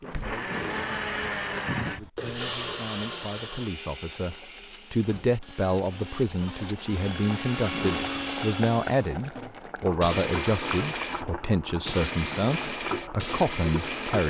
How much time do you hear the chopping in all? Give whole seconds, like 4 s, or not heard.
not heard.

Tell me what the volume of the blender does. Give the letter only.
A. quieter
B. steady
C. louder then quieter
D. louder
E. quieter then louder
E.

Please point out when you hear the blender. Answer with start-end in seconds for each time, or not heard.
0.0-14.2.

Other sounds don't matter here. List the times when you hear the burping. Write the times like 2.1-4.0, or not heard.
0.5-2.1, 7.7-8.4.